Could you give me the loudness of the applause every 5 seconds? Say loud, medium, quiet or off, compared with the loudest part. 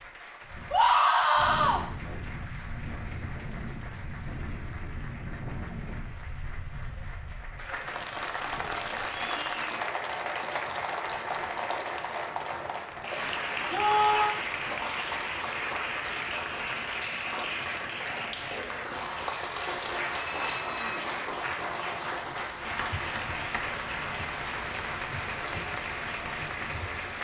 quiet, loud, loud, loud, loud, loud.